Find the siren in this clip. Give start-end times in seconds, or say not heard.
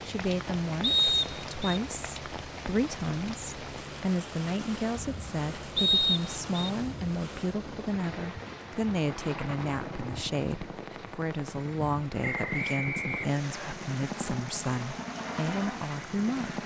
not heard.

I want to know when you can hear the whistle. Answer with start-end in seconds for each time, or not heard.
0.8-1.8, 5.8-6.7, 12.2-13.8.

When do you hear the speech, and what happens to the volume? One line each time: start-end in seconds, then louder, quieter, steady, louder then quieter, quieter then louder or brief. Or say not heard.
0.0-16.6 steady.